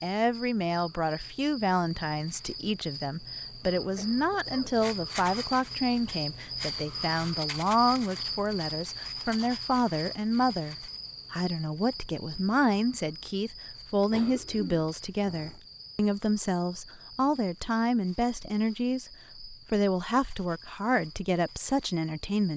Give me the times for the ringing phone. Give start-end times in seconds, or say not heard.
not heard.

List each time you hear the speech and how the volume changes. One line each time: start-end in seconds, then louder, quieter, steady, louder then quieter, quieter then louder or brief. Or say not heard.
0.0-22.5 steady.